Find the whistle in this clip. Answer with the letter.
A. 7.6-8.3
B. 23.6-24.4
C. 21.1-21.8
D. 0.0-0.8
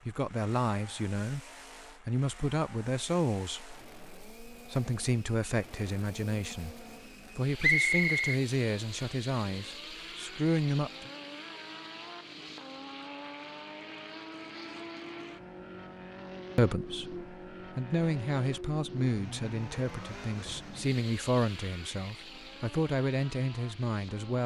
A.